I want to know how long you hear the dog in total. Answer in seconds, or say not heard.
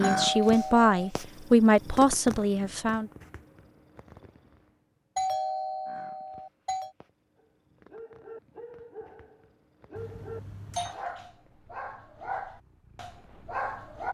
7 s.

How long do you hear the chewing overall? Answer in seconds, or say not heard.
not heard.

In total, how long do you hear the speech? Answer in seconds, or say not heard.
3 s.